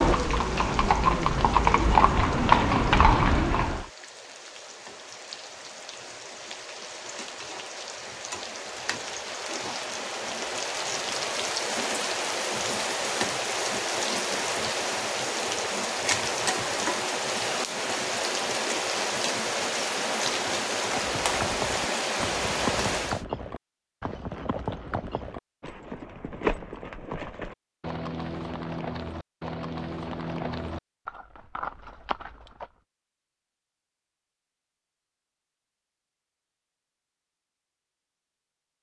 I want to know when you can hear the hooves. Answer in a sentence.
You can hear the hooves from 0.0 to 3.9 s and from 20.9 to 32.7 s.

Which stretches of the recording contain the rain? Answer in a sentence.
You can hear the rain from 0.0 to 23.2 s.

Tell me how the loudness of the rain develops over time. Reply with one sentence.
The loudness of the rain goes up.